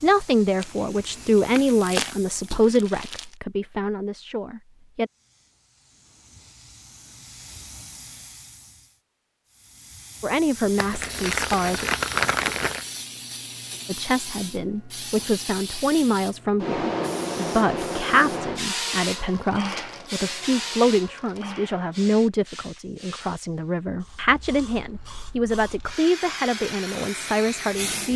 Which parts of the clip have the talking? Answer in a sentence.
You can hear the talking from 0.0 to 5.1 s, from 10.2 to 11.8 s and from 13.8 to 28.1 s.